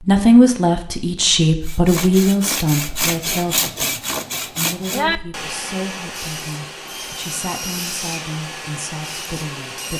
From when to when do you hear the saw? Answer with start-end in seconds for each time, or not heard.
1.6-9.9.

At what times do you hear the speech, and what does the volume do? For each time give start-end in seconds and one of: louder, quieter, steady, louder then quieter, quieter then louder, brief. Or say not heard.
0.0-9.9 quieter.